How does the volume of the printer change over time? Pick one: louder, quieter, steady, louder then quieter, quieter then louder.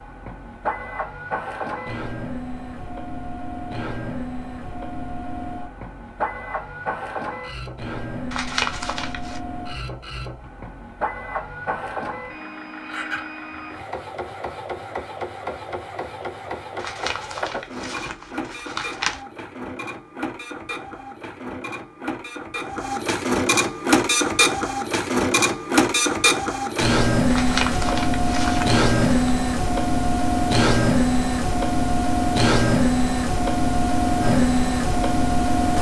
louder.